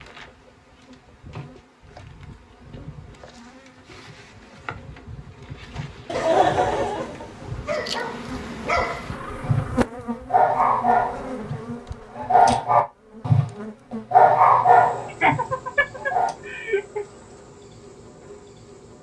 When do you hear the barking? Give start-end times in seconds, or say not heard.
7.6-9.7, 10.3-13.5, 14.1-16.4.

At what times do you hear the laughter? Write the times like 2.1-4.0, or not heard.
6.0-7.6, 15.1-17.1.